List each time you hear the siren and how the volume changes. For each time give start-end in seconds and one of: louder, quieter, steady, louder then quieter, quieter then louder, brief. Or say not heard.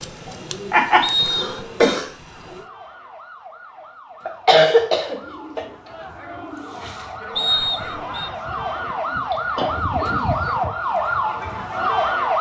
2.1-12.3 louder.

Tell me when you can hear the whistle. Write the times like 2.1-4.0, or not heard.
1.0-1.9, 7.3-8.3.